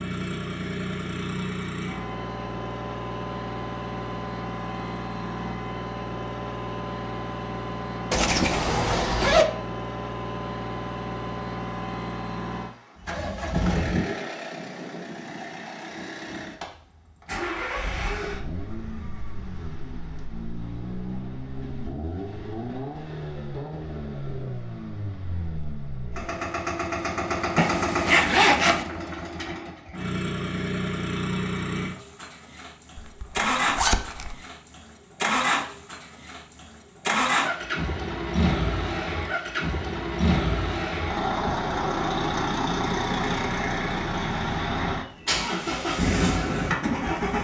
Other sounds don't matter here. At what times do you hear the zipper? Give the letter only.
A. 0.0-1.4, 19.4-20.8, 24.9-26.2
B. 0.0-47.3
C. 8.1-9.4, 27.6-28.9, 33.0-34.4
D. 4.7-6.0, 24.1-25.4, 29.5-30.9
C.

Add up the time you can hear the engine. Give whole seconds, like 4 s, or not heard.
47 s.